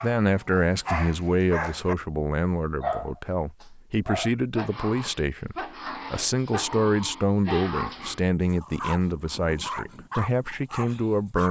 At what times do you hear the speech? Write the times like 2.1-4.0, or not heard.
0.0-11.4.